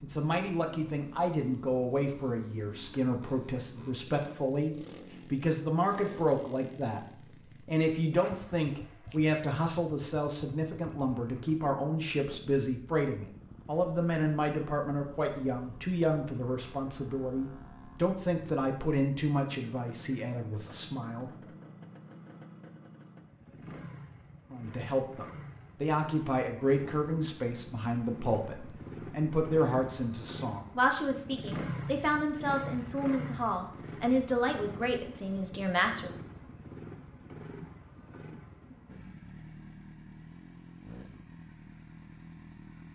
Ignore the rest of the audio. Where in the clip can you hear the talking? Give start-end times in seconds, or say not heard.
0.0-21.3, 24.5-36.1.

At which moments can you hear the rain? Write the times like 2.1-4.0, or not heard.
not heard.